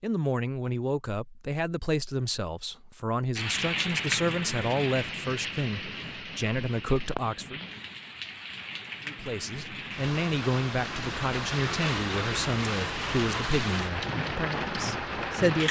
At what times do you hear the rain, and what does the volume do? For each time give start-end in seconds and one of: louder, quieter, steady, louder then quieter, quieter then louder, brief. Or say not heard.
3.4-15.6 quieter then louder.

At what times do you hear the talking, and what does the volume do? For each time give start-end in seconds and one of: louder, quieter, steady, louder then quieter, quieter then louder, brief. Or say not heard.
0.0-7.7 steady
9.1-15.6 quieter.